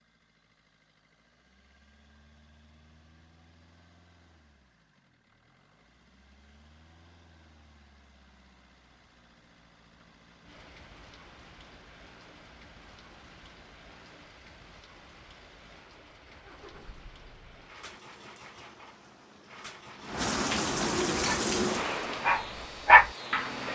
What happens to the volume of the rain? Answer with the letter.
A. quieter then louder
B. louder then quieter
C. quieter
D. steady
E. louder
E.